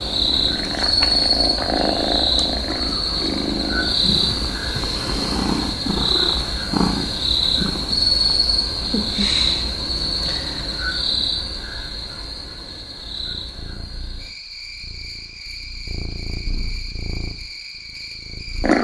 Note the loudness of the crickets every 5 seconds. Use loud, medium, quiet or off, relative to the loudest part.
loud, loud, medium, quiet.